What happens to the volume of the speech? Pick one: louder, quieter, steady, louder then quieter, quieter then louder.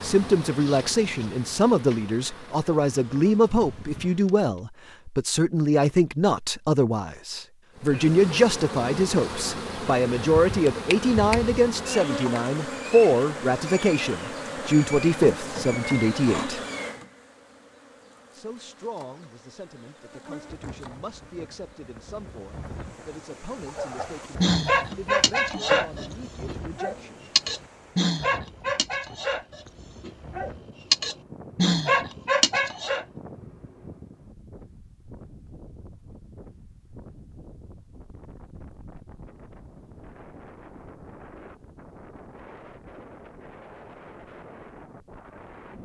quieter.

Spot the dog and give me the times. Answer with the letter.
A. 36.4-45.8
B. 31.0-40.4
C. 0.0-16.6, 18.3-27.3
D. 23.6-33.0
D.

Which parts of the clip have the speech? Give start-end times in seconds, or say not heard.
0.0-16.6, 18.3-27.3.